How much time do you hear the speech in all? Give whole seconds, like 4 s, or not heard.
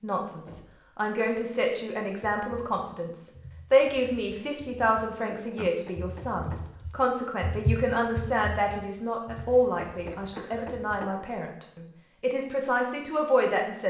14 s.